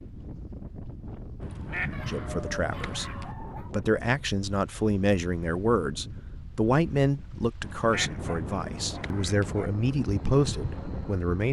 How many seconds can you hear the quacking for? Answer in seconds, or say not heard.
4 s.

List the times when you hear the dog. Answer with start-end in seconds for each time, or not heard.
1.9-3.7, 8.2-9.8.